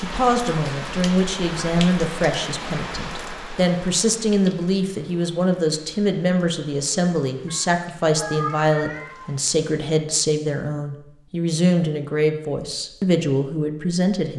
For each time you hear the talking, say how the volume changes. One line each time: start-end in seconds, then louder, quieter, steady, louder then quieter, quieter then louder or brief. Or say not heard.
0.0-14.3 steady.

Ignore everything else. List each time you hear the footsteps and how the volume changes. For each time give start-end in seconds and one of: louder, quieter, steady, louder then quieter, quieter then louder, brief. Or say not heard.
not heard.